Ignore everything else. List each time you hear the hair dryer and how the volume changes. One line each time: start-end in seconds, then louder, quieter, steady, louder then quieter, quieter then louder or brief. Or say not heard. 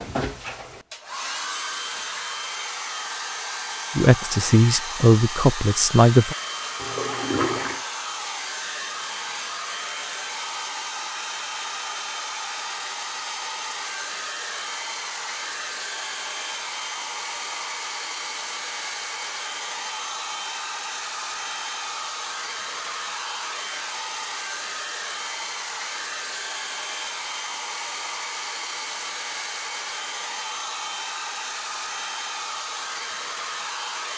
0.0-34.1 steady.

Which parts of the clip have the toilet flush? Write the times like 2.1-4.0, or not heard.
6.8-7.8.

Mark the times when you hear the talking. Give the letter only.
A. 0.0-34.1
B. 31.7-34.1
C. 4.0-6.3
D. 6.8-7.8
C.